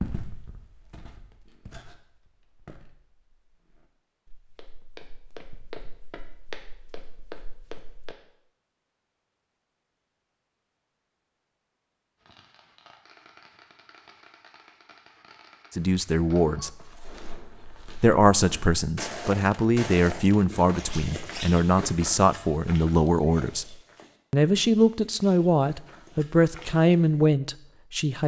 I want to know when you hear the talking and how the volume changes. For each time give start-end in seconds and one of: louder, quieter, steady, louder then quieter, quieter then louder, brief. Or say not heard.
15.7-16.8 brief
18.0-28.2 steady.